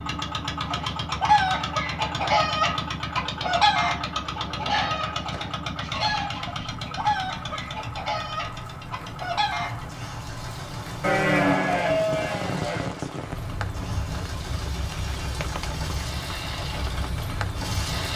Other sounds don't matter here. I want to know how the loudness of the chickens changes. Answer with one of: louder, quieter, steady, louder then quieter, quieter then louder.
quieter.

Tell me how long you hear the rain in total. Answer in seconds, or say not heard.
18 s.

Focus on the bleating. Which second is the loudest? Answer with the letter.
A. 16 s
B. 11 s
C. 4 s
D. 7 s
B.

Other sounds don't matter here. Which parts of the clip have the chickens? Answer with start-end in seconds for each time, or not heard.
0.6-9.8.